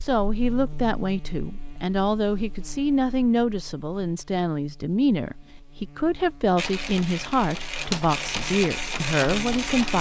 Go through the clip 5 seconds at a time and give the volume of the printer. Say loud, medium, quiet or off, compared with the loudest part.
off, loud.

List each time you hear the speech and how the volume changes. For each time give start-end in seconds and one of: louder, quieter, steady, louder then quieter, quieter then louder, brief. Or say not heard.
0.0-9.9 steady.